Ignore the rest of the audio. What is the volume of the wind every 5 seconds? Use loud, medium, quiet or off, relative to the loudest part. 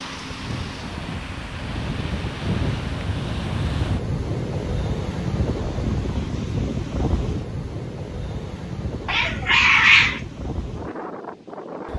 loud, loud, medium.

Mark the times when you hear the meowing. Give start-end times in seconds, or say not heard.
9.1-10.2.